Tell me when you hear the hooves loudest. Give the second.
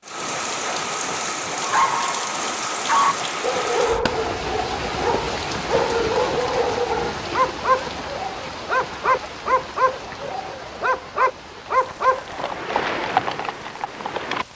13 s.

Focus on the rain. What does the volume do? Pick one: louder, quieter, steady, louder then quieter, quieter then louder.
quieter.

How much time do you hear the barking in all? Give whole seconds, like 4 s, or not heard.
11 s.